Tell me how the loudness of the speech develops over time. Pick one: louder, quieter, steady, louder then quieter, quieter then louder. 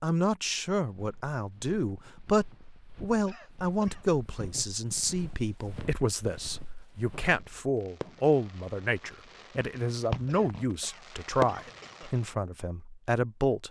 steady.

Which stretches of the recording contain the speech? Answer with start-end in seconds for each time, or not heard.
0.0-13.6.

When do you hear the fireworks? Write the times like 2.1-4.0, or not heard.
7.2-12.2.